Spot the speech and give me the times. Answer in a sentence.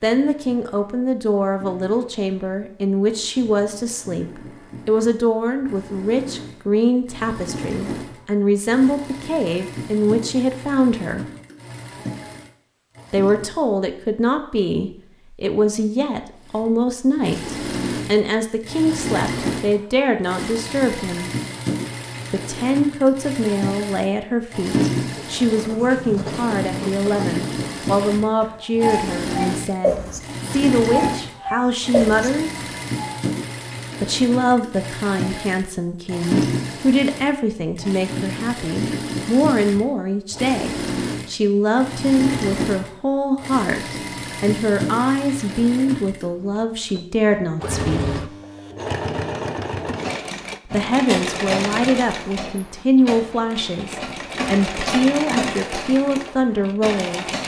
The speech can be heard from 0.0 to 11.2 s, from 13.1 to 21.3 s, from 22.3 to 32.6 s, from 34.0 to 48.1 s and from 50.6 to 57.3 s.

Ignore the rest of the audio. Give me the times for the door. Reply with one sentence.
The door can't be heard in this clip.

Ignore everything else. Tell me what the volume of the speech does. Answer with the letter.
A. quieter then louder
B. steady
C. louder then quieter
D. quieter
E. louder
B.